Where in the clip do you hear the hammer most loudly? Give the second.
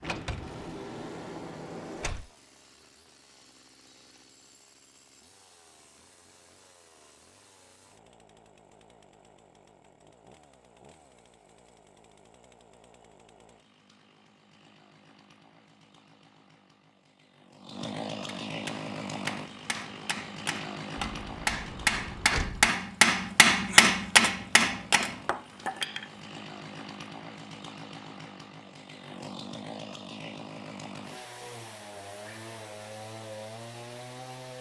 24 s.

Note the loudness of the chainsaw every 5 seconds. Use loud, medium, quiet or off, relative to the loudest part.
quiet, quiet, quiet, loud, loud, loud, loud.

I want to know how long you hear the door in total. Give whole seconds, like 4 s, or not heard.
4 s.